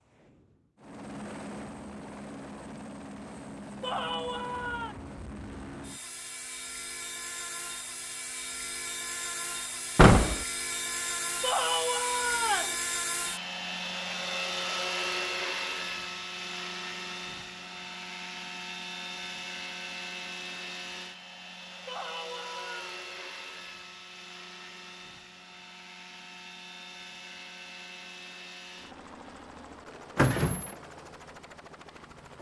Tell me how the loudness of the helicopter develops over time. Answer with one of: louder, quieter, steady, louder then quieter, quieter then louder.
louder then quieter.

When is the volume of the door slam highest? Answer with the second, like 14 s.
10 s.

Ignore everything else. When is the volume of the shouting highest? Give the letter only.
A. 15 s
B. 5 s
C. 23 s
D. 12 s
D.